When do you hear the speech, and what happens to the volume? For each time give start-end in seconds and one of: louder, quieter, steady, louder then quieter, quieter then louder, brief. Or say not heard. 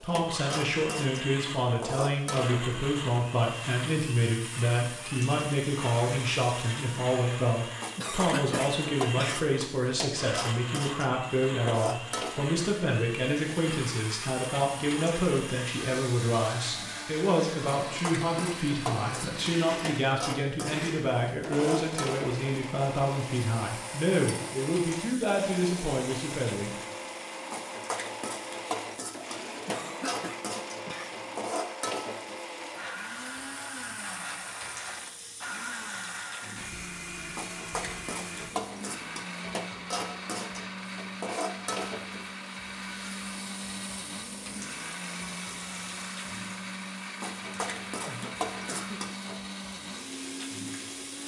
0.0-26.7 steady.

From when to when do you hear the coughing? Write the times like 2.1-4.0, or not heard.
8.0-9.5, 29.6-31.1, 48.0-49.0.